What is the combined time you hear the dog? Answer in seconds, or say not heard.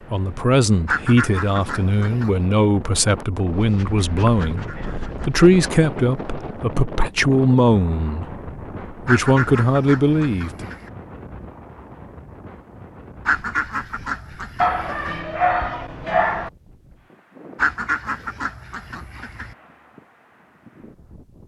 4 s.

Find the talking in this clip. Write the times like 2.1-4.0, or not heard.
0.1-10.7.